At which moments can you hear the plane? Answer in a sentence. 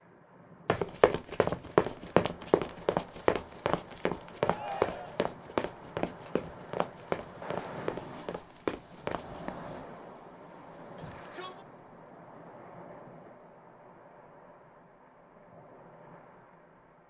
The plane can't be heard in this clip.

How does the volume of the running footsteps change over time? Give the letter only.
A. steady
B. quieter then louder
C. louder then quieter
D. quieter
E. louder
D.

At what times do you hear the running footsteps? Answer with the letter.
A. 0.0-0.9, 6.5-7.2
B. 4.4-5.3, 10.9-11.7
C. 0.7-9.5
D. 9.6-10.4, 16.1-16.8
C.